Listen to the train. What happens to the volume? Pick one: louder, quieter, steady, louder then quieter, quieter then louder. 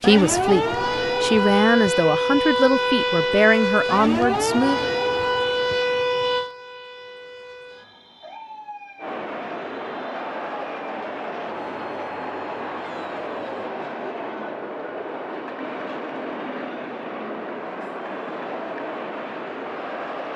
steady.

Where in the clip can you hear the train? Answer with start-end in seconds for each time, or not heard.
8.9-20.3.